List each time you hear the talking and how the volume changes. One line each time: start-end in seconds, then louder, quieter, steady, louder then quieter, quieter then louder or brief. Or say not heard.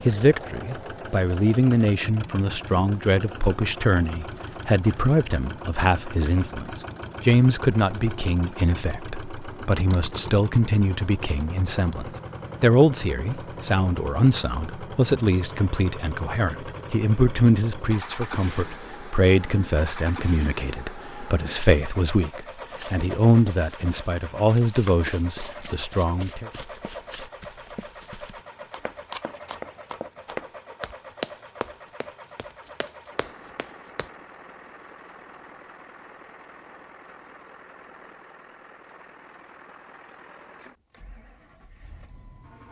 0.1-26.5 steady.